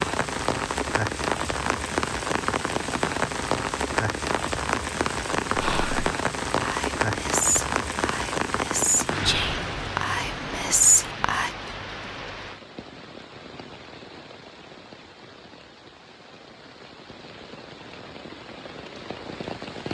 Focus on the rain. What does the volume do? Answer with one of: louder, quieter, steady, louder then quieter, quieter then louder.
quieter.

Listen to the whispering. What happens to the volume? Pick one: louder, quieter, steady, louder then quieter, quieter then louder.
louder.